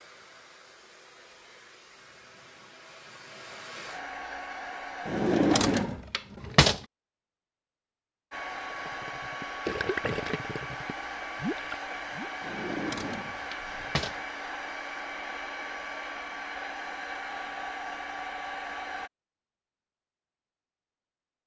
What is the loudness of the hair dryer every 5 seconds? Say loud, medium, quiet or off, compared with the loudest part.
medium, loud, loud, loud, off.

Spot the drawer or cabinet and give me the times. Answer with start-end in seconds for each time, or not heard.
5.0-6.8, 12.4-14.2.